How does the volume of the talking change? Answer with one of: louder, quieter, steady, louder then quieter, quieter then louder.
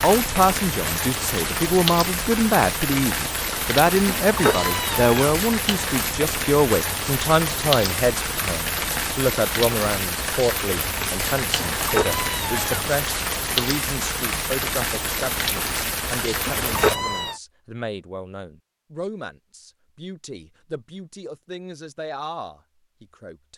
quieter.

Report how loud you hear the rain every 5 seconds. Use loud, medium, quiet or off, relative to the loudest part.
loud, loud, loud, loud, off.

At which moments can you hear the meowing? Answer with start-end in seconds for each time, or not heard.
4.1-5.2, 11.6-12.9, 16.4-17.4.